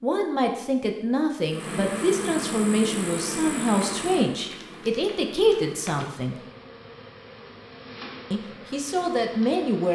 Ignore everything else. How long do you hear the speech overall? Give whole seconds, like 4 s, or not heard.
8 s.